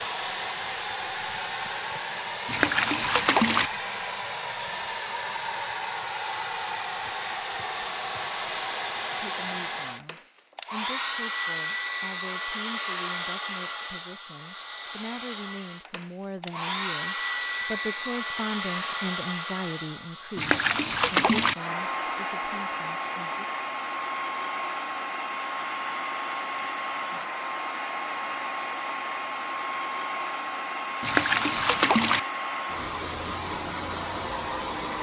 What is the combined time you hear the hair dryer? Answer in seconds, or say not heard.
35 s.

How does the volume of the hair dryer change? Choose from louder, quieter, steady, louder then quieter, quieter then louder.
steady.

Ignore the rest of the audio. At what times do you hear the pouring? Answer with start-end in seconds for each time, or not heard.
2.5-3.7, 20.4-21.6, 31.0-32.2.